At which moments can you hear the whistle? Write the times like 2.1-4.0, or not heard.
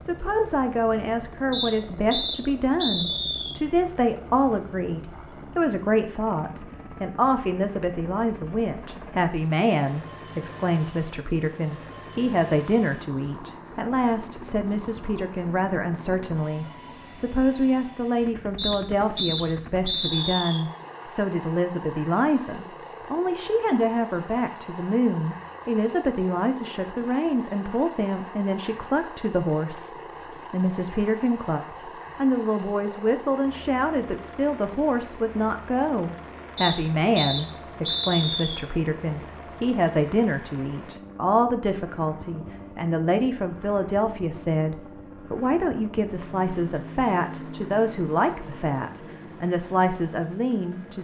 1.5-3.5, 18.6-20.6, 36.5-38.6.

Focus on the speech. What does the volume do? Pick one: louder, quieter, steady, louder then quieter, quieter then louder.
steady.